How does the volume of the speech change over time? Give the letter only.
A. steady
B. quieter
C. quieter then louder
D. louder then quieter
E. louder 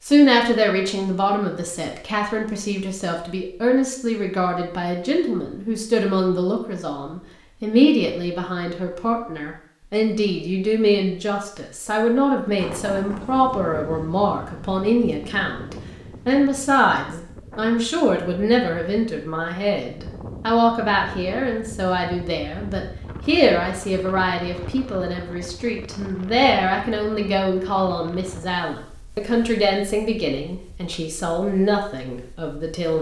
A.